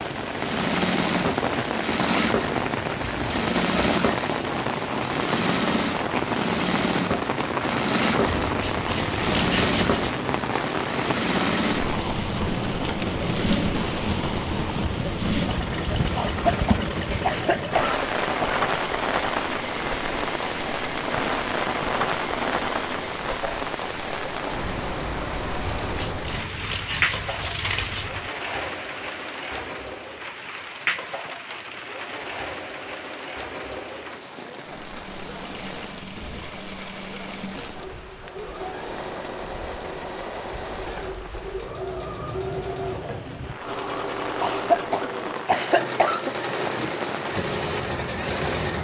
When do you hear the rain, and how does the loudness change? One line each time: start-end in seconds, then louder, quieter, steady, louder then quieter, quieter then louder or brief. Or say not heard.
0.0-48.7 quieter.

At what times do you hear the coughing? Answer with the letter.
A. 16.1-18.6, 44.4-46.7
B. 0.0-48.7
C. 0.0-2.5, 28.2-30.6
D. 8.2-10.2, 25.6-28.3
A.